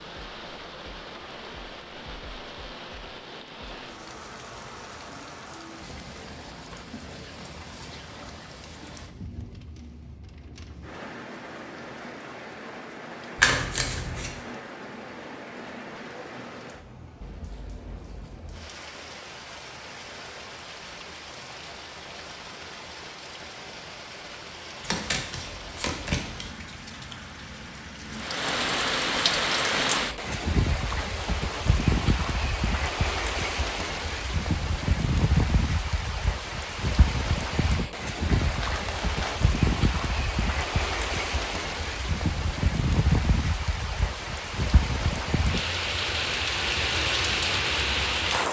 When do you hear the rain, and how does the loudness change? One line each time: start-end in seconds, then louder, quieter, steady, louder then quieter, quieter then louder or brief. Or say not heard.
0.0-48.4 louder.